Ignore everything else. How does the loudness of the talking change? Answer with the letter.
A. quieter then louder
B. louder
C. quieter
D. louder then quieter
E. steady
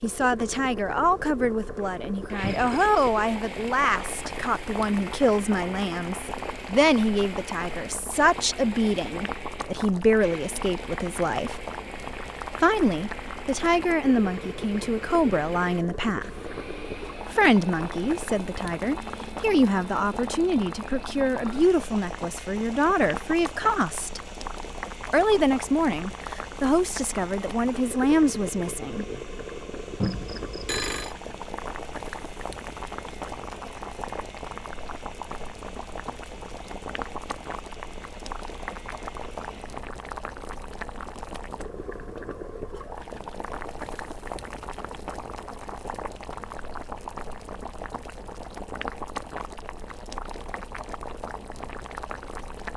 E.